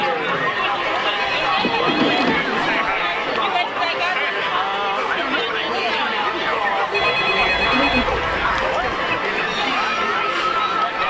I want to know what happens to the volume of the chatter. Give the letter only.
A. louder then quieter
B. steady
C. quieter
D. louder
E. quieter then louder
B.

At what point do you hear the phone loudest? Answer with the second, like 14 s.
8 s.